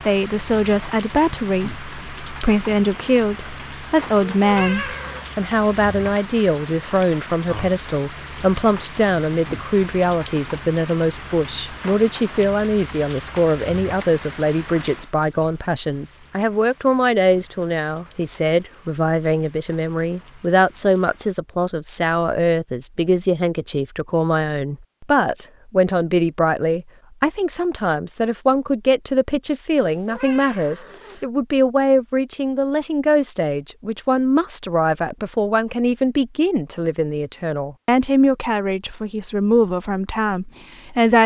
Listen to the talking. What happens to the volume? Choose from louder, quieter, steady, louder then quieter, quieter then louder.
steady.